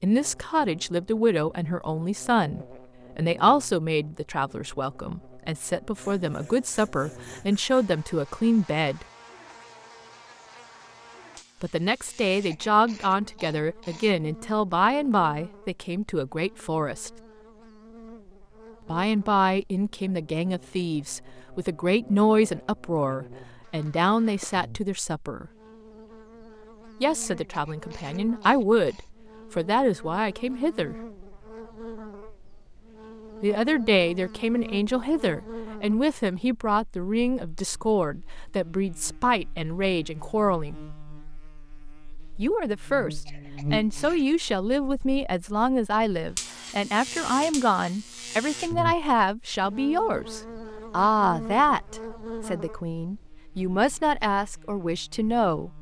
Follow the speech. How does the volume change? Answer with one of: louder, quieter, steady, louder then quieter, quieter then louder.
steady.